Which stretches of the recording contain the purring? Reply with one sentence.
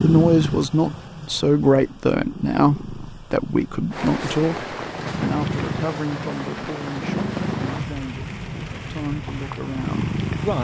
The purring can be heard from 0.0 to 10.5 s.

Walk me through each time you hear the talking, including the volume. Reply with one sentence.
The talking can be heard from 0.0 to 10.5 s, getting quieter.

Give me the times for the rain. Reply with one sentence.
You can hear the rain from 3.9 to 10.5 s.